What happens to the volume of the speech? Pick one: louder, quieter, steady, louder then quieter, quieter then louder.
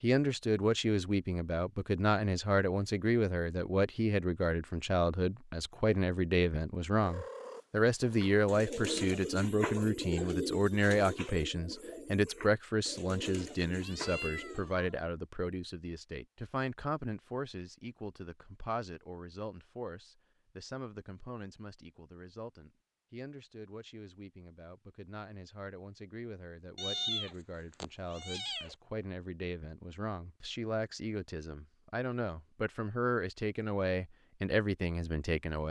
quieter then louder.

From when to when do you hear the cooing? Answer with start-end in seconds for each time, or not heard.
8.1-14.8.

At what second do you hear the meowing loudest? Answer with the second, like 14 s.
27 s.